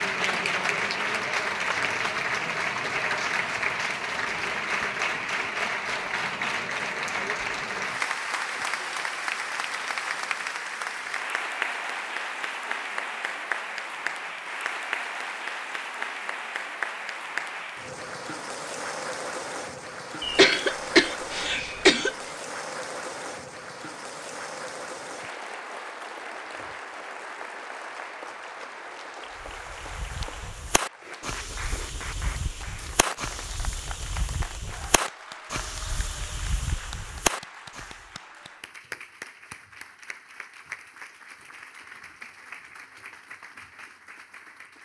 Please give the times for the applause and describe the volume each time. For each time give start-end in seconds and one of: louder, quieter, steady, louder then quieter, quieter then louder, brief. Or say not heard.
0.0-44.8 quieter.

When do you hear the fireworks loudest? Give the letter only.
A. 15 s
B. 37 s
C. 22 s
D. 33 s
B.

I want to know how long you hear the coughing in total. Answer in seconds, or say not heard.
2 s.